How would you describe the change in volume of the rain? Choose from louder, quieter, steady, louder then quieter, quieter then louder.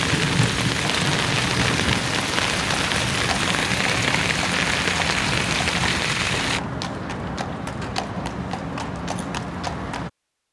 steady.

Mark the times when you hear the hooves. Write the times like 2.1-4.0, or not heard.
0.8-10.1.